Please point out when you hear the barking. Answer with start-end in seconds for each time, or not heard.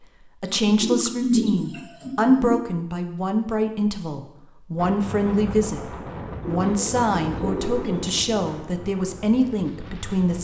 not heard.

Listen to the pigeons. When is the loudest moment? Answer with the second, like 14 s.
1 s.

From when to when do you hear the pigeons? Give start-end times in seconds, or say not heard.
0.5-2.6, 6.4-8.4.